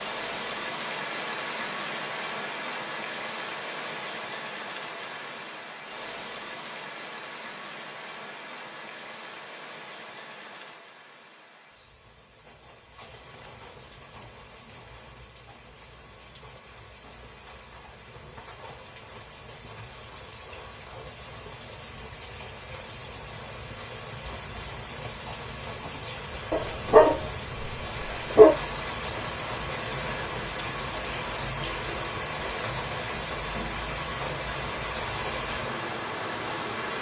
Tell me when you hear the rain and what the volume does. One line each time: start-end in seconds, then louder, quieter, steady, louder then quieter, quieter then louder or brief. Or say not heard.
0.0-36.9 quieter then louder.